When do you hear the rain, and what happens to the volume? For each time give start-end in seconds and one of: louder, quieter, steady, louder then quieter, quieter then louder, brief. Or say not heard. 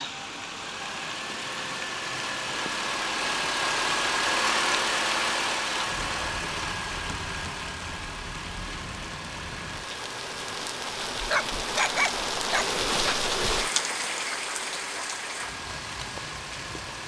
0.0-17.0 louder.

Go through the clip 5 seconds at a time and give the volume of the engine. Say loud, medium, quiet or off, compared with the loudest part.
loud, loud, medium, medium.